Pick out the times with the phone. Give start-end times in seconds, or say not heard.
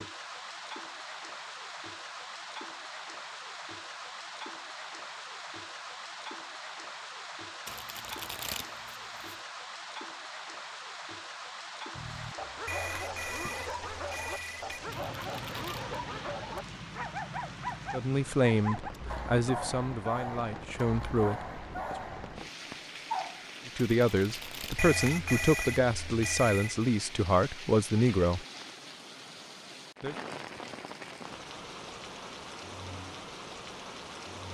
12.7-14.8, 24.8-26.9.